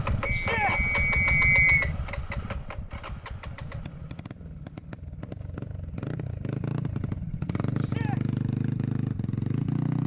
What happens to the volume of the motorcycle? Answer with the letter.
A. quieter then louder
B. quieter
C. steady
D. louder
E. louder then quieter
A.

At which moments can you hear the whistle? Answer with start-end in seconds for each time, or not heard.
0.2-1.9.